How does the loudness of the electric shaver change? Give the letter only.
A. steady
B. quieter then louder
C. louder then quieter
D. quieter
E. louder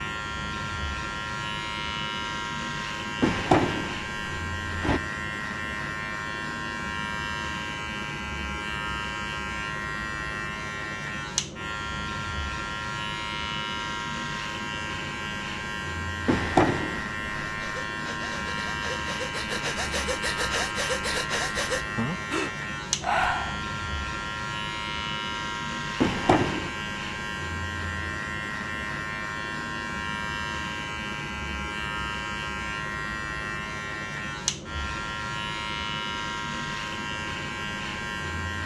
A.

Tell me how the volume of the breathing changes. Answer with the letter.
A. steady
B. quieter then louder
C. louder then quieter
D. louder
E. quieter
D.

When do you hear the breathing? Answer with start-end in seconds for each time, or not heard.
17.4-23.6.